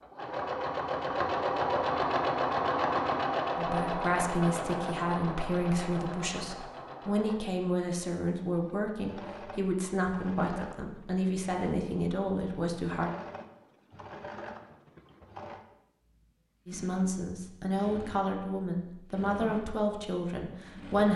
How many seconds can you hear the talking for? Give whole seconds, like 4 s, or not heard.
14 s.